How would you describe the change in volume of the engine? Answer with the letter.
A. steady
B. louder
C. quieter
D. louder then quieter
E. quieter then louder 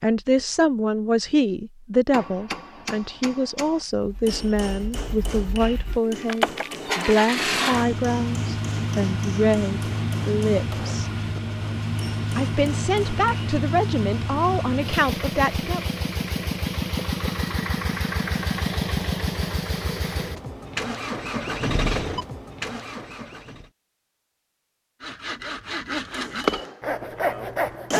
A.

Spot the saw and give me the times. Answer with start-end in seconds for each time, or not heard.
25.0-27.9.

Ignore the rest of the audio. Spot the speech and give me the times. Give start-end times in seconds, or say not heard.
0.0-11.1, 12.3-15.8.